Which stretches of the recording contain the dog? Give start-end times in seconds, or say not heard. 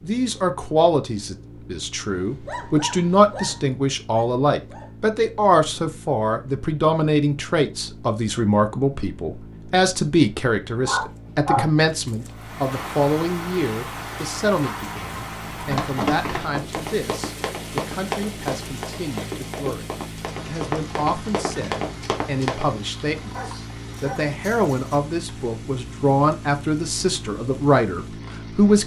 2.0-4.9, 10.8-12.3, 23.1-25.0.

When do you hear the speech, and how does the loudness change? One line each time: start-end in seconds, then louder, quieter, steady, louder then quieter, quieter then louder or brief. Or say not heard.
0.0-28.8 quieter then louder.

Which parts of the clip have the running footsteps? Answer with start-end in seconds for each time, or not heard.
15.6-22.7.